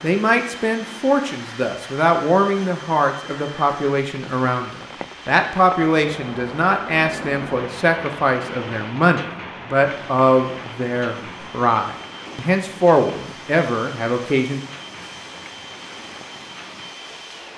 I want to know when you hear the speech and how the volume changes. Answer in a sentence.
The speech can be heard from 0.0 to 14.6 s, at a steady volume.